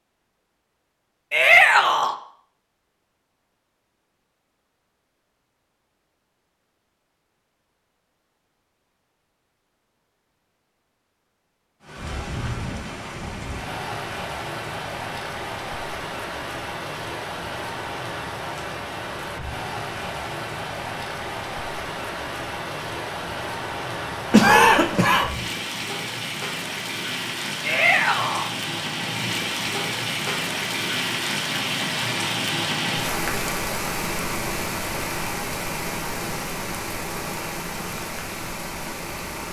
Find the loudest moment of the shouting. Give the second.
2 s.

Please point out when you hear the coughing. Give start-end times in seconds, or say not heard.
24.3-25.3.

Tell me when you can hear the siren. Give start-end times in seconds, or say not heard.
not heard.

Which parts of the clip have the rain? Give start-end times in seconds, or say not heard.
11.8-39.4.